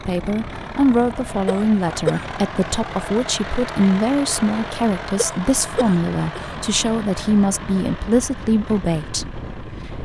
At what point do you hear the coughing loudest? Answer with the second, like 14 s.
2 s.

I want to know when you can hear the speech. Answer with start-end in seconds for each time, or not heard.
0.1-9.9.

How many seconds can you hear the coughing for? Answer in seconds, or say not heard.
2 s.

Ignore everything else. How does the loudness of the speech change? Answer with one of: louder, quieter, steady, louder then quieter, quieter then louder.
steady.